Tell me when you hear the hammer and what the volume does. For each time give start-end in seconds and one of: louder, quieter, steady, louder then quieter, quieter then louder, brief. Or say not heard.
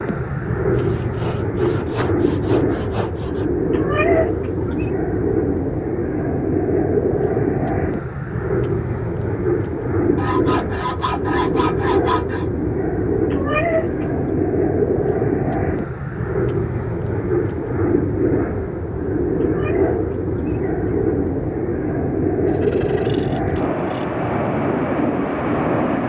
not heard.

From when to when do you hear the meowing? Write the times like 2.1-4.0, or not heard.
3.7-4.9, 13.3-14.1, 19.4-20.8.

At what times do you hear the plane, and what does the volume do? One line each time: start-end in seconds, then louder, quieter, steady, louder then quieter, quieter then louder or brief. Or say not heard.
0.0-26.0 steady.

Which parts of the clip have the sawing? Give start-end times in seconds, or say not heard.
0.7-3.5, 10.2-12.4, 22.4-24.1.